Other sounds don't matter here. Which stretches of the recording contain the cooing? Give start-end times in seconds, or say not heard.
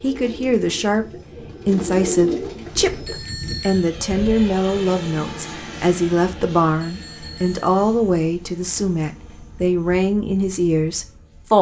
0.0-3.2.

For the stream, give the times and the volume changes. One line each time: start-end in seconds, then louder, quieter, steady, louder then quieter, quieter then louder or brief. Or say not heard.
not heard.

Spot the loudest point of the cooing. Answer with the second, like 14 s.
2 s.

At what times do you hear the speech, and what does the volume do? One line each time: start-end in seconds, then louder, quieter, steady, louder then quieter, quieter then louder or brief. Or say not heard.
0.0-11.5 steady.